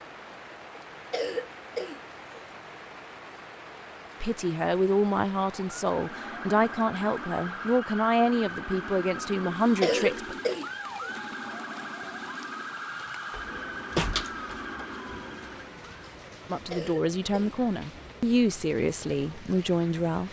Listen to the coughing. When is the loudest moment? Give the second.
10 s.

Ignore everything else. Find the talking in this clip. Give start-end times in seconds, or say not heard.
4.2-10.3, 16.5-20.2.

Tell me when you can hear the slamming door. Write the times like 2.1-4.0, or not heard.
13.3-14.8.